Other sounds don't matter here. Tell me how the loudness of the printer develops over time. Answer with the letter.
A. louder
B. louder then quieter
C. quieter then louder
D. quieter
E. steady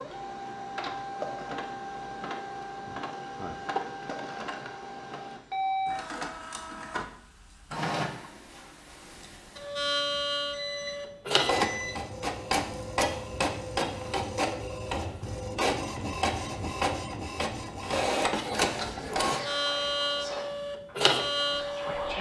A.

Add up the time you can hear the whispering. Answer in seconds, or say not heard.
3 s.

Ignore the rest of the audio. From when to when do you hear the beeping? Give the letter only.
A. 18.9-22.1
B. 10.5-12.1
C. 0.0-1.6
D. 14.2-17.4
B.